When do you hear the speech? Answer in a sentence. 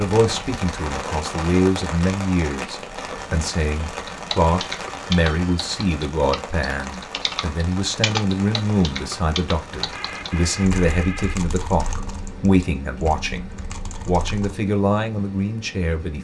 You can hear the speech from 0.0 to 16.1 s.